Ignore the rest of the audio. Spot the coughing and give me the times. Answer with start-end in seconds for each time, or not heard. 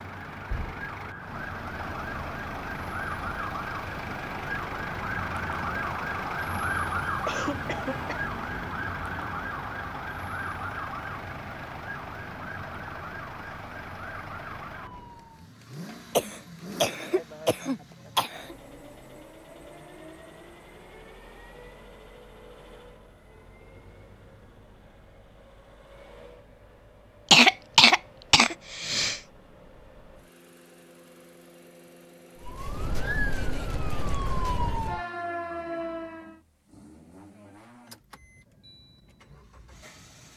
7.2-8.2, 16.1-18.6, 27.3-29.1.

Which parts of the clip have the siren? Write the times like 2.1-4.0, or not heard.
0.0-15.5, 32.4-36.4.